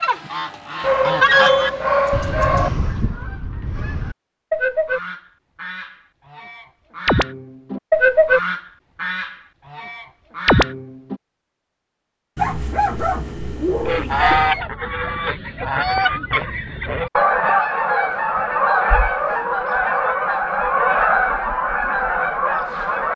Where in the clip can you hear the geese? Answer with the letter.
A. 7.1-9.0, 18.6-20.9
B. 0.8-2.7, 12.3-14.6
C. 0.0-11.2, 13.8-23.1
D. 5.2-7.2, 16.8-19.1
C.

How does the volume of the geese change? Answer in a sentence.
The volume of the geese stays about the same.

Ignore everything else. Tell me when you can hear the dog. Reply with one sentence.
The dog can be heard from 0.8 to 2.7 s and from 12.3 to 14.6 s.